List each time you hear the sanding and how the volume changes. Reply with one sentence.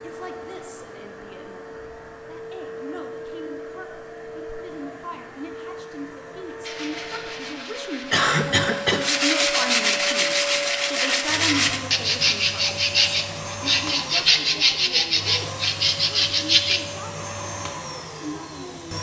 The sanding can be heard from 6.6 to 16.8 s, getting louder.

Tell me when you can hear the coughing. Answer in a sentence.
The coughing can be heard from 8.1 to 9.1 s.